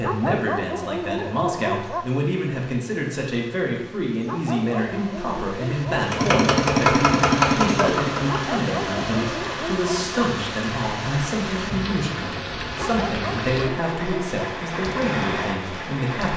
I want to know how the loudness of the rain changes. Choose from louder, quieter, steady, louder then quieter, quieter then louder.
louder.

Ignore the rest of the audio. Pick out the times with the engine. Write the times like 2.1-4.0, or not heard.
6.0-9.3.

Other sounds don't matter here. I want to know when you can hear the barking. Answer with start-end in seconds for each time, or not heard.
0.0-2.0, 4.2-6.0, 8.2-10.2, 12.8-14.6.